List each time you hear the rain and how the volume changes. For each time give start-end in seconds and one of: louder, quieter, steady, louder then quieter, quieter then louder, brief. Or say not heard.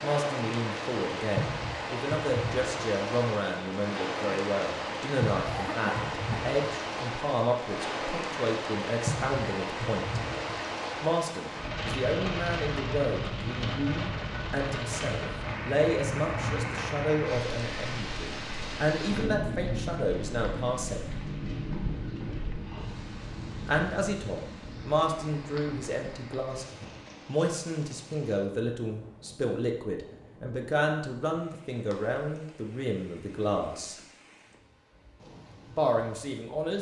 0.0-36.7 quieter.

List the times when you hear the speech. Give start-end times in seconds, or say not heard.
0.0-10.2, 11.0-21.1, 23.6-34.0, 35.8-36.7.